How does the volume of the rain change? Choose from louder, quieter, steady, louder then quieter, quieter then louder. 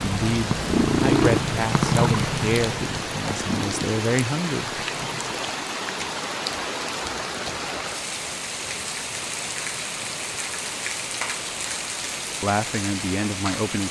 steady.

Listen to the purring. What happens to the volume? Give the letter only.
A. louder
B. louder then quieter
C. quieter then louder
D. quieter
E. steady
D.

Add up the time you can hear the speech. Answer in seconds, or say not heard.
6 s.